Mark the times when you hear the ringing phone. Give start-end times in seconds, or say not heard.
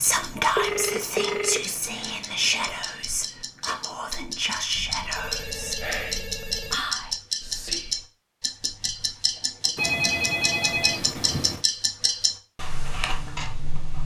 0.6-2.8, 4.8-6.8, 9.8-11.7.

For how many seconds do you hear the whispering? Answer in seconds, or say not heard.
8 s.